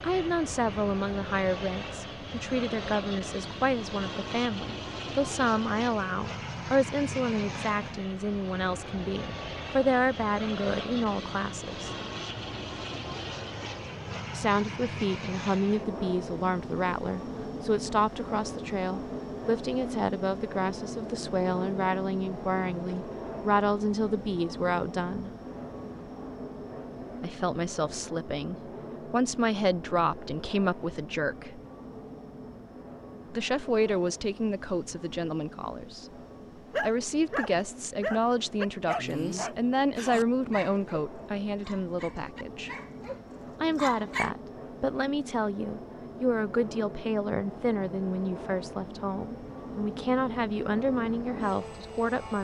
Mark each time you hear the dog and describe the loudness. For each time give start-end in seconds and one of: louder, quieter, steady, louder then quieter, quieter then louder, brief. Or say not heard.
36.7-44.3 quieter then louder.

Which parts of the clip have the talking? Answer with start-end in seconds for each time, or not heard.
0.0-11.9, 14.3-25.3, 27.2-31.6, 33.3-36.1, 36.8-42.7, 43.6-52.3.